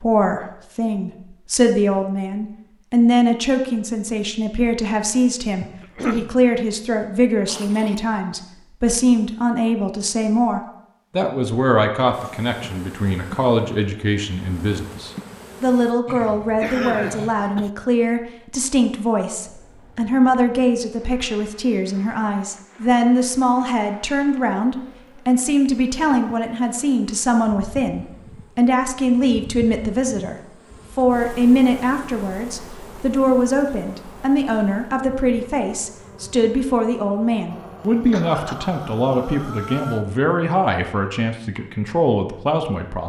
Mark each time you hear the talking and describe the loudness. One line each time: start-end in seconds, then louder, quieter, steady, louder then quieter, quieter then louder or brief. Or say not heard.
0.0-43.0 steady.